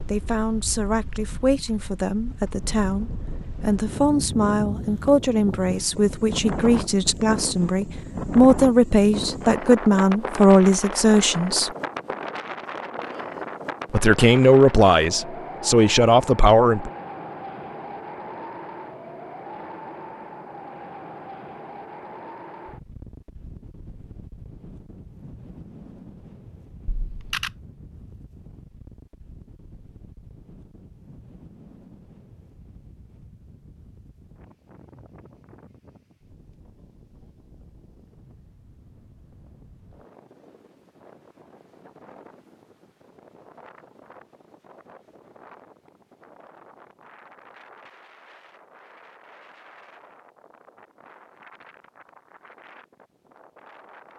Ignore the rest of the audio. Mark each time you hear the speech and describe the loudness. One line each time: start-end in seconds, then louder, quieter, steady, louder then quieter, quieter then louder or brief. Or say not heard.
0.1-11.7 louder
13.9-16.9 brief.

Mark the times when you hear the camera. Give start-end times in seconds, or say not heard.
26.9-27.5.